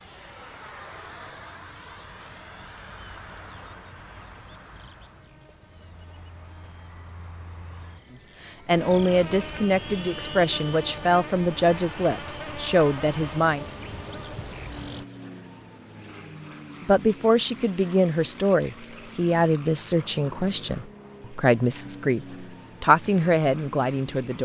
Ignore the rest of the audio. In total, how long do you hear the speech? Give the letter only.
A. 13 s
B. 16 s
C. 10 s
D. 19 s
A.